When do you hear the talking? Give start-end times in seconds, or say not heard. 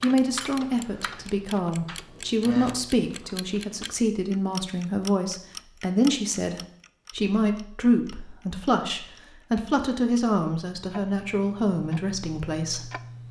0.0-13.2.